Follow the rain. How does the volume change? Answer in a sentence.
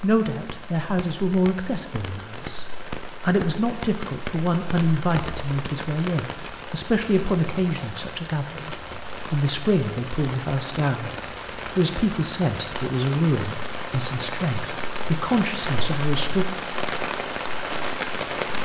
The volume of the rain goes up.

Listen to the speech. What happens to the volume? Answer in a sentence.
The loudness of the speech stays about the same.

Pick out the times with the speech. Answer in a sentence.
You can hear the speech from 0.0 to 16.4 s.